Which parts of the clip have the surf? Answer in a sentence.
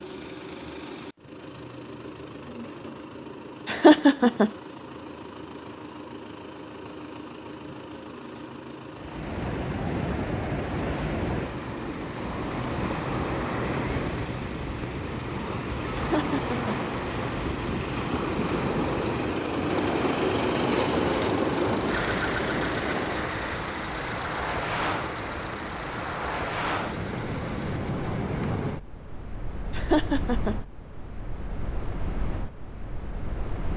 You can hear the surf from 8.9 to 33.7 s.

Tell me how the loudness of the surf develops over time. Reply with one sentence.
The loudness of the surf goes down.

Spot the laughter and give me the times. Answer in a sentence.
The laughter can be heard from 3.6 to 4.5 s, from 15.9 to 16.8 s and from 29.8 to 30.6 s.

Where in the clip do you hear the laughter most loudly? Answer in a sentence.
The volume of the laughter peaks at 4 seconds.